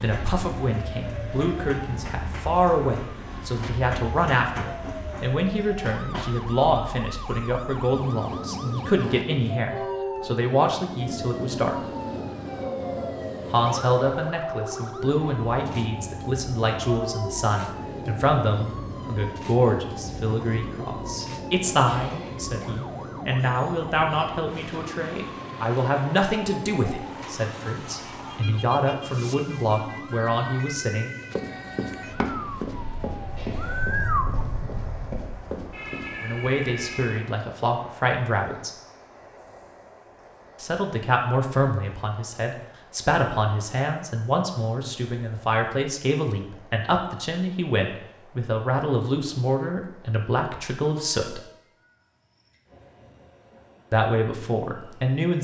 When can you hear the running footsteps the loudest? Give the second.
32 s.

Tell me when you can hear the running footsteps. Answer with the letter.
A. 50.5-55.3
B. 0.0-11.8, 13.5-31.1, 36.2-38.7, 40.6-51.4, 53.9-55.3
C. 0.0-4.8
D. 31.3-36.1
D.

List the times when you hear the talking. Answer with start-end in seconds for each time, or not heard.
0.0-11.8, 13.5-31.1, 36.2-38.7, 40.6-51.4, 53.9-55.3.